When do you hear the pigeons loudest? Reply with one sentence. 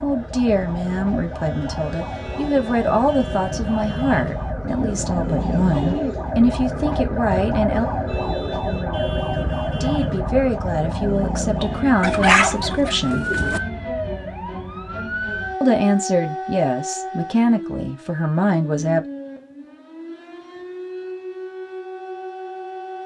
The volume of the pigeons peaks at 12 seconds.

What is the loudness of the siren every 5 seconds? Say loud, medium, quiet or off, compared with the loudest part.
medium, loud, loud, medium, medium.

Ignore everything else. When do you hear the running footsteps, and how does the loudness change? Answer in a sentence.
You can't hear the running footsteps here.